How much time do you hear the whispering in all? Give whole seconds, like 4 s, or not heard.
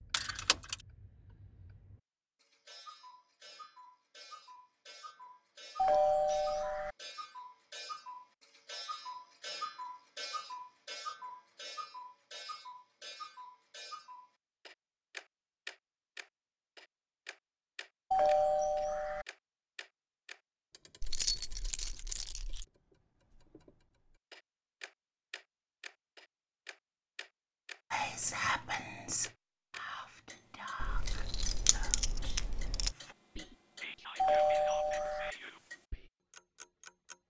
8 s.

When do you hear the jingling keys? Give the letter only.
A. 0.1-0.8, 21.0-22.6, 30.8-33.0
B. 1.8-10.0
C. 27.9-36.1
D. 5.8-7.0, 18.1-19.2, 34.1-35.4
A.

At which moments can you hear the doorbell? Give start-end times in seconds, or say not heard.
5.8-7.0, 18.1-19.2, 34.1-35.4.